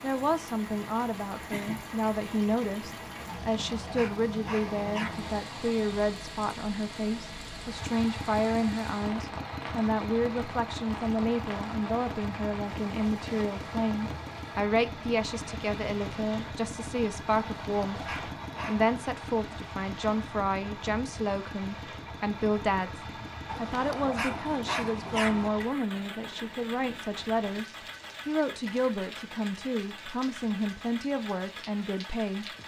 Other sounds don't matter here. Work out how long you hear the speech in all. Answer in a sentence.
The speech can be heard for 32 seconds in total.